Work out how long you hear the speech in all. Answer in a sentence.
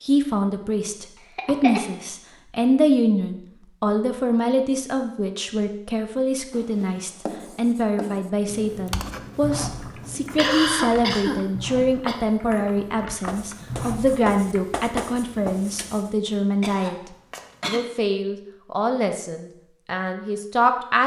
You can hear the speech for 21 seconds altogether.